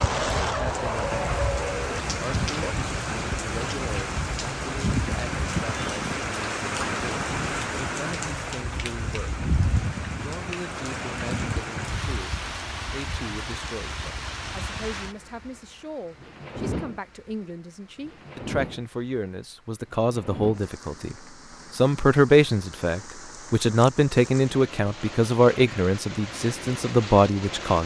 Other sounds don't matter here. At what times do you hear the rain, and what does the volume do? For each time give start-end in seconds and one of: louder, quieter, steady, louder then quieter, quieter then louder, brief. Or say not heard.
0.0-27.8 quieter.